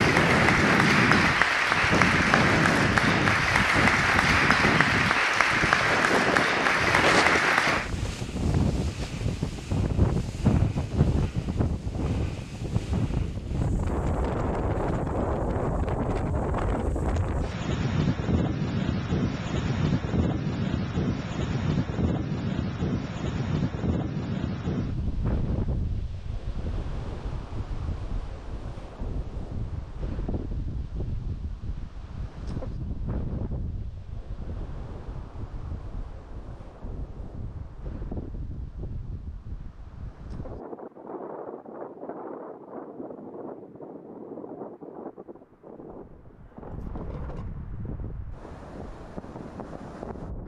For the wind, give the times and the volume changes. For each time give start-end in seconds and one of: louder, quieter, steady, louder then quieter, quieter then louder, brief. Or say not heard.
0.0-50.4 quieter.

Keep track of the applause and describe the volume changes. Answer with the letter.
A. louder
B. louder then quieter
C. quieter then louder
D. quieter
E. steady
E.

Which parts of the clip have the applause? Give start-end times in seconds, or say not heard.
0.0-7.9.